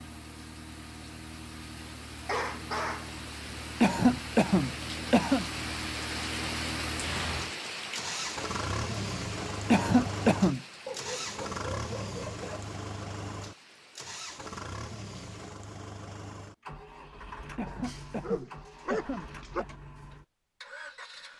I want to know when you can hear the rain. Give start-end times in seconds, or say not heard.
0.0-15.6.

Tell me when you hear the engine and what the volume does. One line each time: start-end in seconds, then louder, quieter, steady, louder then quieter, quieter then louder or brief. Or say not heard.
0.0-21.3 louder then quieter.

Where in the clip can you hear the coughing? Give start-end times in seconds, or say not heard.
3.8-5.5, 9.7-10.6, 17.6-19.6.